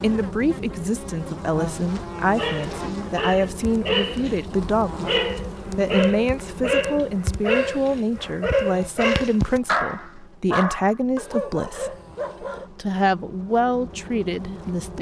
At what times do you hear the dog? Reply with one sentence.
The dog can be heard from 2.2 to 12.7 s.